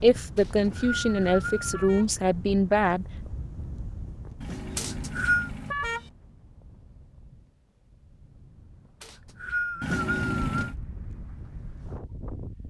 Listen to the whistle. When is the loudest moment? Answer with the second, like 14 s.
5 s.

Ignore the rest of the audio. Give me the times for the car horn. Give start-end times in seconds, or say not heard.
0.6-2.1, 4.4-6.1, 9.8-10.8.